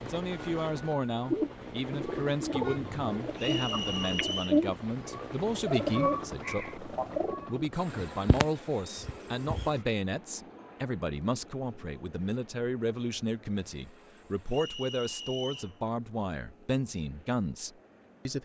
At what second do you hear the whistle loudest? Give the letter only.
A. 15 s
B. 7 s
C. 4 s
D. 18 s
C.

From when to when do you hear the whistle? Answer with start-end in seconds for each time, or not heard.
3.4-4.6, 14.5-15.8.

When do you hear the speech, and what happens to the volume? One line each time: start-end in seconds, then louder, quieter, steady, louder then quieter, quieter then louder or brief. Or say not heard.
0.0-18.3 steady.